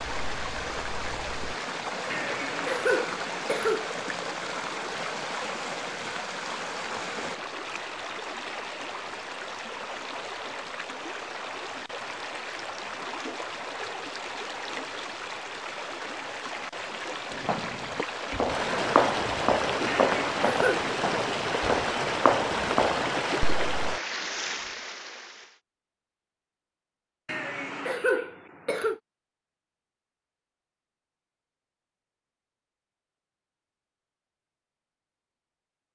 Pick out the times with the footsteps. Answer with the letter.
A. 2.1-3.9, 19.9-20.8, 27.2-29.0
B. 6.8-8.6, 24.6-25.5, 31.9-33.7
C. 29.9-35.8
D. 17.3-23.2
D.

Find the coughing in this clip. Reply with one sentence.
The coughing can be heard from 2.1 to 3.9 s, from 19.9 to 20.8 s and from 27.2 to 29.0 s.